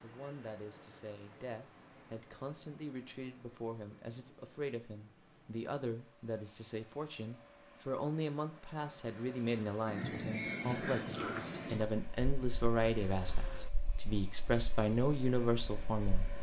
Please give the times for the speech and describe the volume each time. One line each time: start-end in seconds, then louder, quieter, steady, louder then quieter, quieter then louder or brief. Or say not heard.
0.0-16.2 louder.